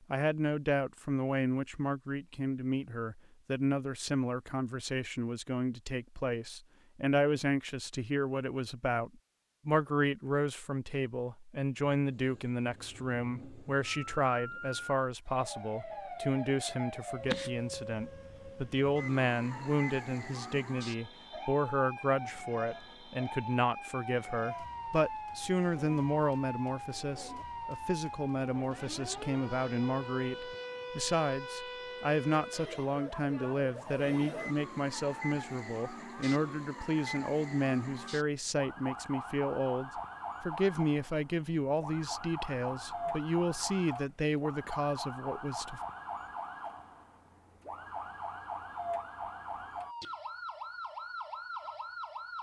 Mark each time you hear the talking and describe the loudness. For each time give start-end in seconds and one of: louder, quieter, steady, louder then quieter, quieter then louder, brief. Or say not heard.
0.1-45.8 steady.